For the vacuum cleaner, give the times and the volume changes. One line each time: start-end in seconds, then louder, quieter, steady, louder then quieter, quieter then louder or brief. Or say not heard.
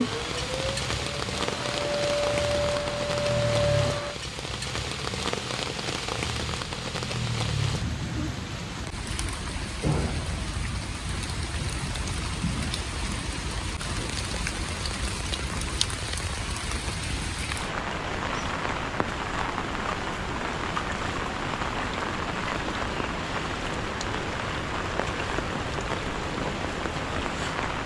0.0-4.2 louder.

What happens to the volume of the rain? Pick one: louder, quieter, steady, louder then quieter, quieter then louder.
steady.